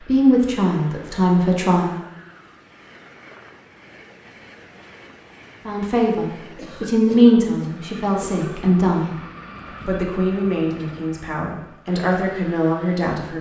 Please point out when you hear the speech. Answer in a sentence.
You can hear the speech from 0.1 to 2.0 s, from 5.7 to 9.2 s and from 9.8 to 13.3 s.